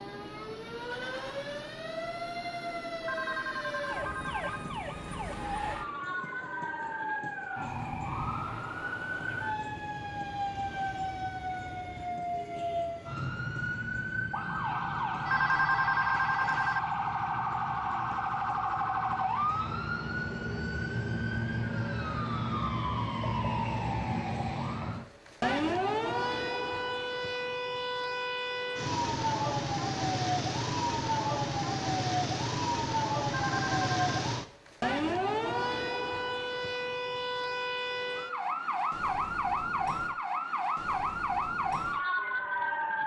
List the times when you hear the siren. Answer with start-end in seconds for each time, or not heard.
0.0-43.0.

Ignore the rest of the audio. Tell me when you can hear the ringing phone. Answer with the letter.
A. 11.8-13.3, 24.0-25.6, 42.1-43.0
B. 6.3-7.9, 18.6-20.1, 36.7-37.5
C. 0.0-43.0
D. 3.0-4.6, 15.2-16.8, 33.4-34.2
D.